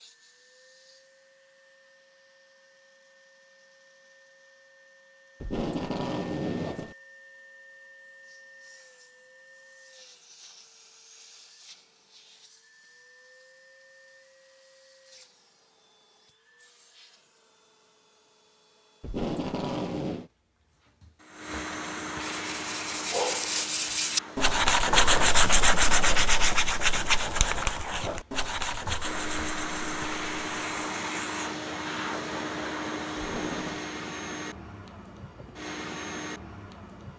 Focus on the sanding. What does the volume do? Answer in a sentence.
The loudness of the sanding goes up, then down.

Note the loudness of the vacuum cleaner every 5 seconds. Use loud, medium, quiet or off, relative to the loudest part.
quiet, quiet, quiet, quiet, medium, loud, loud, medium.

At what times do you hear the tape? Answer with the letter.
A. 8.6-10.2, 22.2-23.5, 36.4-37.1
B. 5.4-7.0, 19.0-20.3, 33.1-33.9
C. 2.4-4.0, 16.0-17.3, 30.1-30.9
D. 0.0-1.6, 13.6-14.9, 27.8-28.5
B.